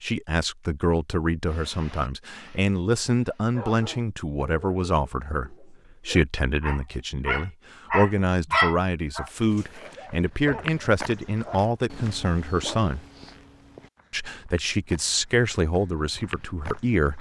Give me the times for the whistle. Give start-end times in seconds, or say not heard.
not heard.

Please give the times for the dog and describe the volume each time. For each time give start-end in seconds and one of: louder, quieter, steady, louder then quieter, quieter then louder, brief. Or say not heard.
1.4-11.8 louder then quieter
12.7-13.3 brief.